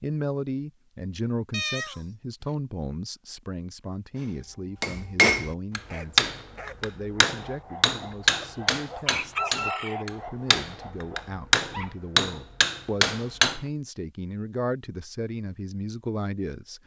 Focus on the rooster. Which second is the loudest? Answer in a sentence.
The loudest moment of the rooster is at 10 seconds.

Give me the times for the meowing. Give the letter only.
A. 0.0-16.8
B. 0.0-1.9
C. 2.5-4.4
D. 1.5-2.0
D.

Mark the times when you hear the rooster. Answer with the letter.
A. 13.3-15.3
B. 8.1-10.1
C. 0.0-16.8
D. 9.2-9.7
B.